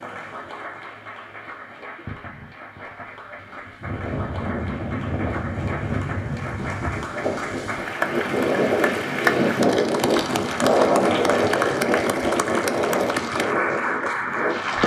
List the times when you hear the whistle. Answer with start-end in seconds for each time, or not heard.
not heard.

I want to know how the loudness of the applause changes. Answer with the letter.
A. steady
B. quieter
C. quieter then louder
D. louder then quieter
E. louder
E.